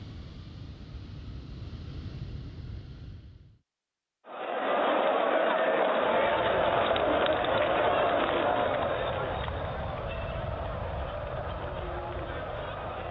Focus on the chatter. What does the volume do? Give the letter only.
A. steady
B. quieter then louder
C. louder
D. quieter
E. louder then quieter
D.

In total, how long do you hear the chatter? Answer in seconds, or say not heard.
9 s.